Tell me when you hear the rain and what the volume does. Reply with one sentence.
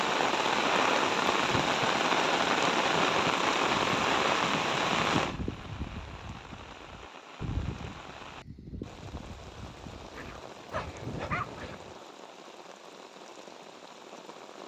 The rain can be heard from 0.0 to 14.6 s, getting quieter.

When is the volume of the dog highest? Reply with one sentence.
The volume of the dog peaks at 11 seconds.